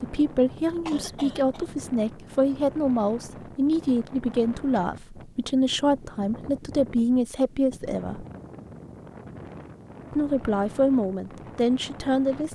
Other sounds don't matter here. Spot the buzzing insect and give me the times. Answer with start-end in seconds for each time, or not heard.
not heard.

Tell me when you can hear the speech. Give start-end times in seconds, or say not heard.
0.0-8.2, 10.1-12.5.